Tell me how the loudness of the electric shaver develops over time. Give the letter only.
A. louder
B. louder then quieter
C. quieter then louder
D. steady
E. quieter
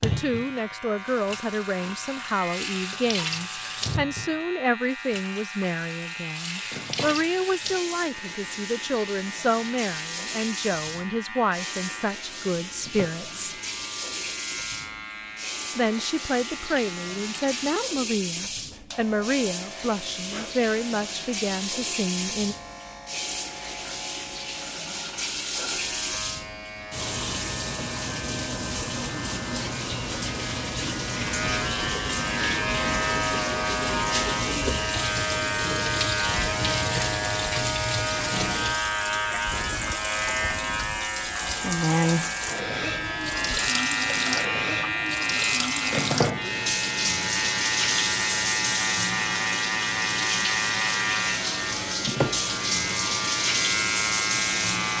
A.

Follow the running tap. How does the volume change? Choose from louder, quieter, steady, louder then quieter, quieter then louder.
louder.